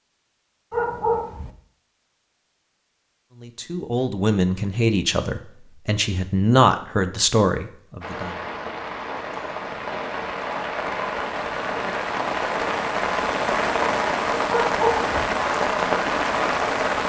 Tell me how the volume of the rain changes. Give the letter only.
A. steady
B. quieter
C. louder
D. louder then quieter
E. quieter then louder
C.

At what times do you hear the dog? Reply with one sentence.
You can hear the dog from 0.7 to 1.5 s and from 14.4 to 15.2 s.